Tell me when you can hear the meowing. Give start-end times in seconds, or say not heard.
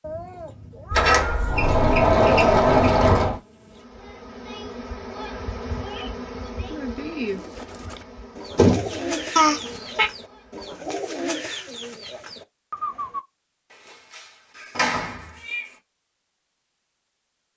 0.0-1.6, 9.3-10.1, 14.5-15.8.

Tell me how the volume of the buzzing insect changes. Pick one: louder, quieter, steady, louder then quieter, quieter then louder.
louder then quieter.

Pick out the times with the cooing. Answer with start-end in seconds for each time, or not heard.
7.2-13.2.